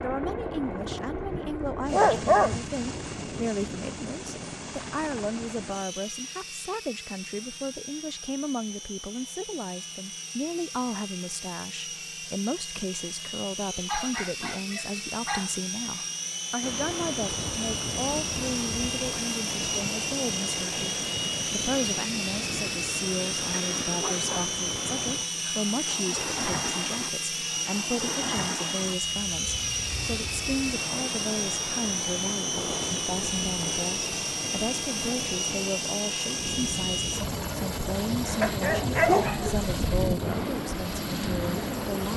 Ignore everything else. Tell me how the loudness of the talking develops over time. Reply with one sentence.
The loudness of the talking stays about the same.